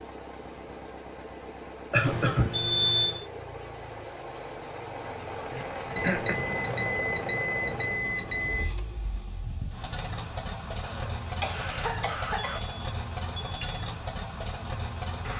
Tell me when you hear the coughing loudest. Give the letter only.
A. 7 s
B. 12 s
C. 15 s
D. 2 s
D.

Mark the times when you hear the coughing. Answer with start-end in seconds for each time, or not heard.
1.9-2.5, 5.5-6.4, 10.8-12.6.